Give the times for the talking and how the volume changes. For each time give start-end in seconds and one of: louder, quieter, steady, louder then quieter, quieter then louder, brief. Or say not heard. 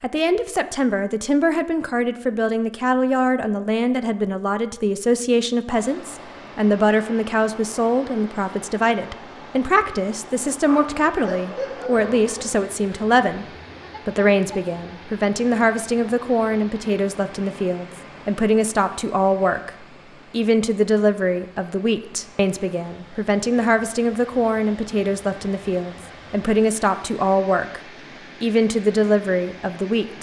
0.0-13.4 steady
14.1-27.8 steady
28.4-30.1 brief.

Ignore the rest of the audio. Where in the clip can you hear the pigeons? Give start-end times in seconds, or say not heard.
not heard.